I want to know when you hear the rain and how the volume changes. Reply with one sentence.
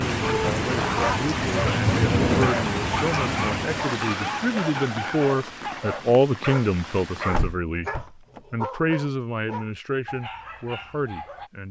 The rain can be heard from 0.0 to 7.5 s, getting quieter.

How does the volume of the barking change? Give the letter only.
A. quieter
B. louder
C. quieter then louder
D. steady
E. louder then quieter
A.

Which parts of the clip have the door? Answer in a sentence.
You can hear the door from 1.6 to 2.5 s and from 7.3 to 8.4 s.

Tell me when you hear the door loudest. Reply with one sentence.
The loudest moment of the door is at 2 seconds.